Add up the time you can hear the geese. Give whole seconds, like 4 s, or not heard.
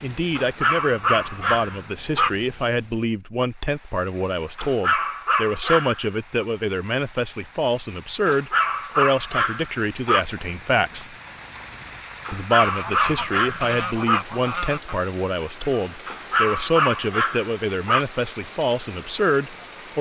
2 s.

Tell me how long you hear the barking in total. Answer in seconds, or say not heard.
10 s.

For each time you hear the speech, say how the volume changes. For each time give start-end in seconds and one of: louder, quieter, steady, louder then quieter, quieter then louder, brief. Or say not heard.
0.0-11.1 steady
12.3-19.9 steady.